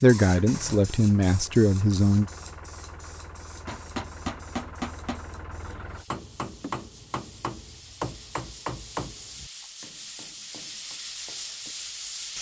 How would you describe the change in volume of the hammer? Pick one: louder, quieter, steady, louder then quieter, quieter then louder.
quieter.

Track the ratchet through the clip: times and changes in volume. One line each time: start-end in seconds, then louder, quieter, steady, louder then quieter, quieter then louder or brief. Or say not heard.
not heard.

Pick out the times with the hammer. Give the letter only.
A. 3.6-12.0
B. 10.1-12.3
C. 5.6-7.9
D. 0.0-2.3
A.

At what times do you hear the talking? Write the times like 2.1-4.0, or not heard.
0.0-2.3.